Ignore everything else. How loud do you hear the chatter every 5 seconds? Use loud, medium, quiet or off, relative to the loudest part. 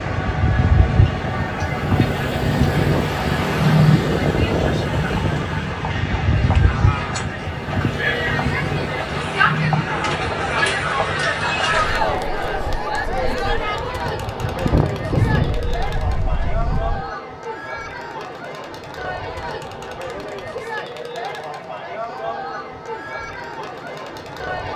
medium, loud, loud, medium, medium.